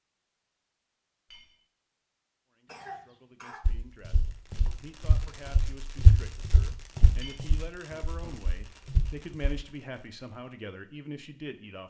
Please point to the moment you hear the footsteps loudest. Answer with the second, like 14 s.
6 s.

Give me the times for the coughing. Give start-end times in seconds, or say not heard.
2.6-3.6, 7.9-8.4.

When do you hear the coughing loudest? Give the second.
3 s.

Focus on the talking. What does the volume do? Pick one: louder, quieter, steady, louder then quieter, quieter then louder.
louder.